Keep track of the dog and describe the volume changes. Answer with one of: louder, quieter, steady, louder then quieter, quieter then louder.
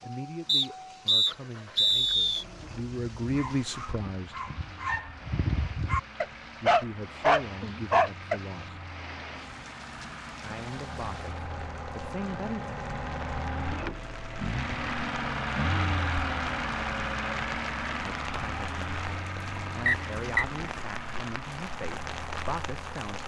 louder.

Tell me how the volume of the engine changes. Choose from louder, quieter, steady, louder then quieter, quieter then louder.
louder then quieter.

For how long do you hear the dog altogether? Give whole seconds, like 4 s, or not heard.
6 s.